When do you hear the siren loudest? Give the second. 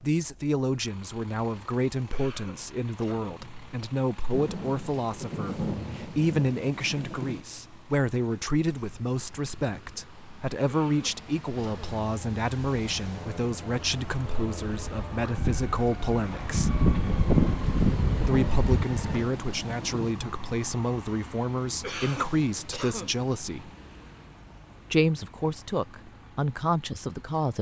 17 s.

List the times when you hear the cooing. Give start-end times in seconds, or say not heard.
not heard.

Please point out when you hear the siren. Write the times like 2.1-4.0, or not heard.
11.7-19.3.